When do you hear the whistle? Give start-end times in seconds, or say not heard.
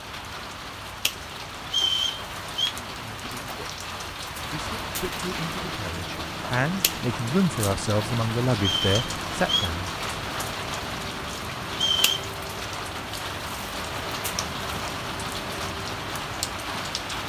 1.6-2.8, 8.6-9.7, 11.7-12.2.